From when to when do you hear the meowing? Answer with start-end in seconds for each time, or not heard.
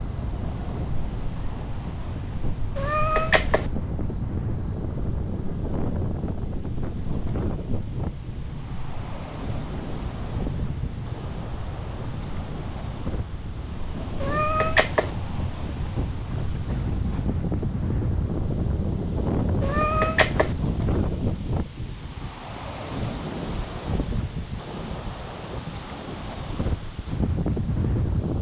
2.8-3.7, 14.2-15.1, 19.6-20.6.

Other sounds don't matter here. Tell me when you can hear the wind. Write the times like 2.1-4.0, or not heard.
0.0-28.3.